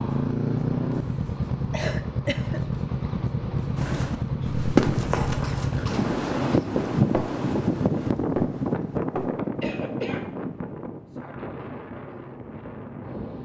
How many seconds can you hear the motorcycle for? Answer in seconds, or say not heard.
6 s.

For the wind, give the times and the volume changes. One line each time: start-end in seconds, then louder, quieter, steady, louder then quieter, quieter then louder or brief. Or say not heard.
5.8-13.3 quieter.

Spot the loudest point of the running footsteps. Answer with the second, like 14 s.
5 s.